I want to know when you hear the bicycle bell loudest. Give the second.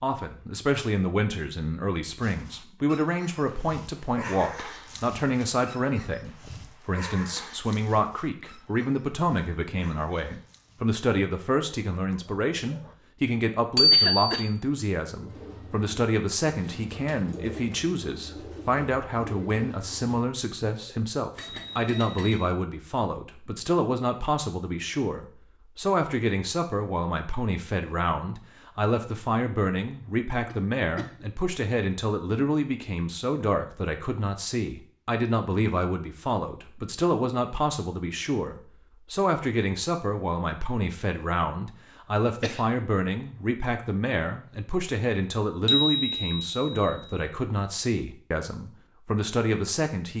14 s.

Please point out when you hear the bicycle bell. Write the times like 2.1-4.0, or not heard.
13.8-14.4, 21.4-22.4, 45.6-47.2.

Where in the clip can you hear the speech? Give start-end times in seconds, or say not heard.
0.0-50.1.